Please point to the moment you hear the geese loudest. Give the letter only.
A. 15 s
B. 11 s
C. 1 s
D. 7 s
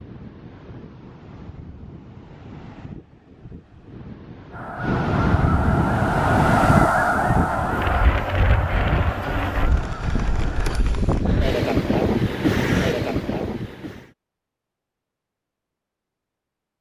D.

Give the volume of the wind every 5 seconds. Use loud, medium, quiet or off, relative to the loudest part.
quiet, loud, loud, off.